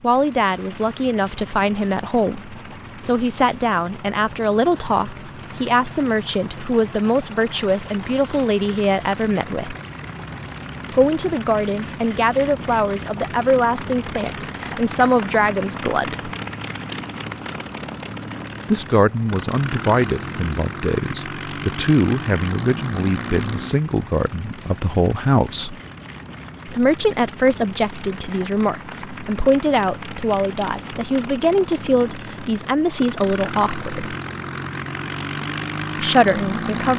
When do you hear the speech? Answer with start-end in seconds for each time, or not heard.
0.0-9.8, 10.9-16.3, 18.7-25.8, 26.6-34.1, 36.0-36.9.